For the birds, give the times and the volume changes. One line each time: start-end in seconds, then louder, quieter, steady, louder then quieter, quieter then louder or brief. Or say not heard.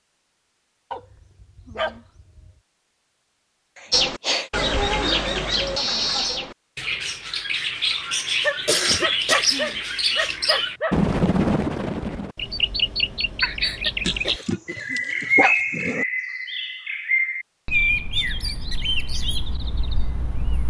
3.9-20.6 steady.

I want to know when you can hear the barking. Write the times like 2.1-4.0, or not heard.
0.9-2.5, 8.4-10.9, 14.1-16.1.